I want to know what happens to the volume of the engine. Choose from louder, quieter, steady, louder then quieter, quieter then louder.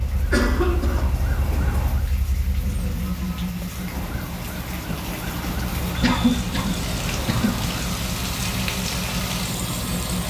louder.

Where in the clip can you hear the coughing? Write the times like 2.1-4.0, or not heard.
0.2-1.2, 6.0-7.6.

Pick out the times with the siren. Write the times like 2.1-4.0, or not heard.
0.0-2.0, 3.7-8.1.